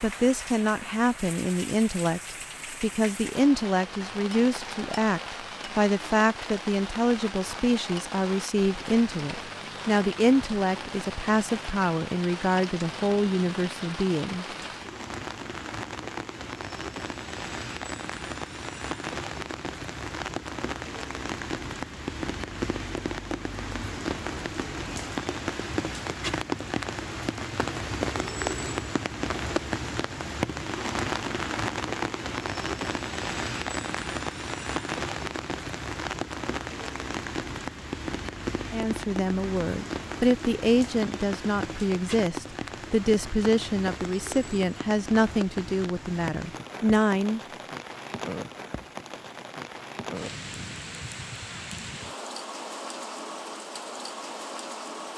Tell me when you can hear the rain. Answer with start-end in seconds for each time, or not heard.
0.0-55.1.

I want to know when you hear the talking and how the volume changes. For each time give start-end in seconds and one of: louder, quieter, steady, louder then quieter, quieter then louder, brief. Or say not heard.
0.0-14.4 steady
38.7-47.4 steady.